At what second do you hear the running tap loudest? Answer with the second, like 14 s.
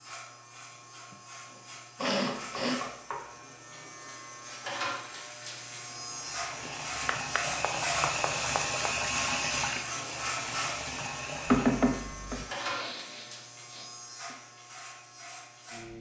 9 s.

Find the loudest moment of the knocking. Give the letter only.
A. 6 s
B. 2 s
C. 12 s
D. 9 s
C.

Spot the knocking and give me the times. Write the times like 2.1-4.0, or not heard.
2.0-3.2, 6.7-8.9, 11.4-12.4.